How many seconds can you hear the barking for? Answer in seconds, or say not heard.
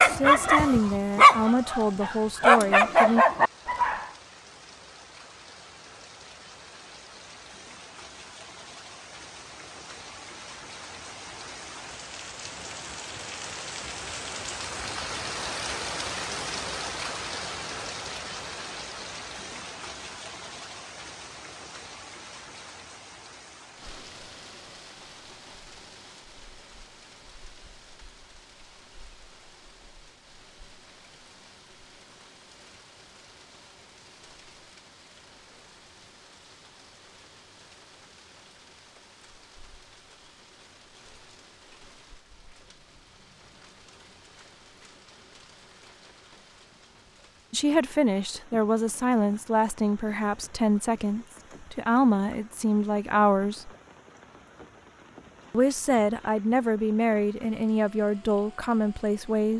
4 s.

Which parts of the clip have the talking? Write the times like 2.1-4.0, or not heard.
0.1-3.2, 47.5-53.7, 55.5-59.5.